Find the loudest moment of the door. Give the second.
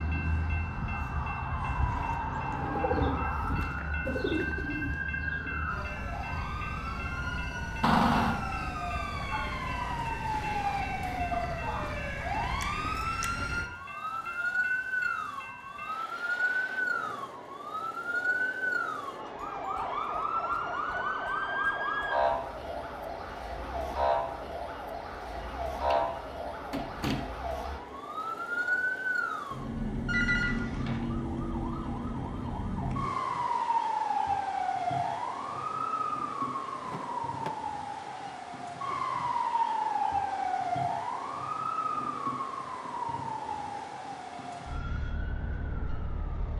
8 s.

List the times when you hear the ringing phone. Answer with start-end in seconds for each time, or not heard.
30.1-31.1.